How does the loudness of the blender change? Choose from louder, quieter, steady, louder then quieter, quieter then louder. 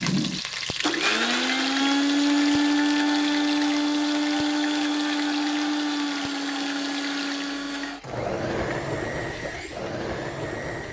quieter.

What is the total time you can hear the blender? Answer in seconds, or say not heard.
11 s.